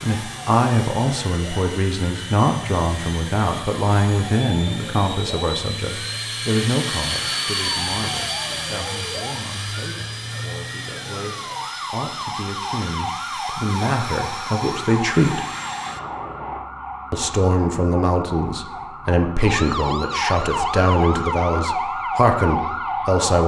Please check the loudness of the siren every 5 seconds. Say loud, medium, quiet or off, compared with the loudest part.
quiet, medium, medium, medium, loud.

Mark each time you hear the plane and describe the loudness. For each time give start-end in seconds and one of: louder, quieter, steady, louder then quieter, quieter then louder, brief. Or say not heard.
0.0-16.6 louder then quieter.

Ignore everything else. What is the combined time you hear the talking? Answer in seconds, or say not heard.
22 s.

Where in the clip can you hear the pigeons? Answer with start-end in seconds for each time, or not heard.
not heard.